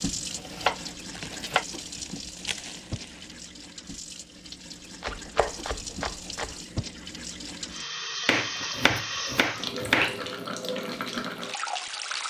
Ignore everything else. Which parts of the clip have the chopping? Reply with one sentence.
You can hear the chopping from 0.1 to 1.6 s, from 5.0 to 6.5 s and from 8.2 to 10.2 s.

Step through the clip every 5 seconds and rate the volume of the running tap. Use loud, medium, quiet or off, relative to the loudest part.
medium, loud, loud.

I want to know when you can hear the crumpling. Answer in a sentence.
You can hear the crumpling from 1.1 to 3.5 s.